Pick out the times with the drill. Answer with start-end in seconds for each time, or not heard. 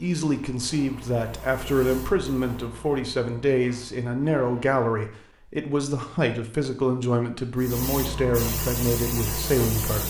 not heard.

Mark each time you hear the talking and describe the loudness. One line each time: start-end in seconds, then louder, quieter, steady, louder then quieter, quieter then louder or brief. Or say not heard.
0.0-10.0 steady.